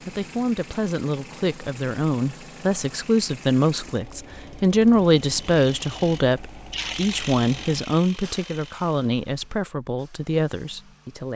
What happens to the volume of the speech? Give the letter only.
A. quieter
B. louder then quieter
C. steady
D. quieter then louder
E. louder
B.